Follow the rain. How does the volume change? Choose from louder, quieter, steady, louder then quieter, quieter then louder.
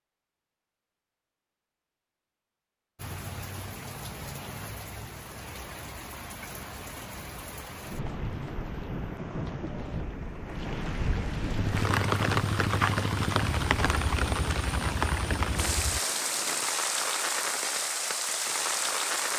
louder.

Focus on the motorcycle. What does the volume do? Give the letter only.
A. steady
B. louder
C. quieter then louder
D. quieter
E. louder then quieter
D.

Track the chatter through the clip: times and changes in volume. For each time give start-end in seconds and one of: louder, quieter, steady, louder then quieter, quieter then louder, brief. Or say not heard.
not heard.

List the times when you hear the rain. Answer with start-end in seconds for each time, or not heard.
3.0-19.3.